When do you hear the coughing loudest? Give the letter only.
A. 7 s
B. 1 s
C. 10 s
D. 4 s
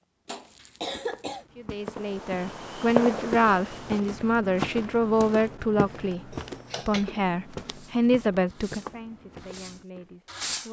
B.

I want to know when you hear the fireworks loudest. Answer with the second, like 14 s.
3 s.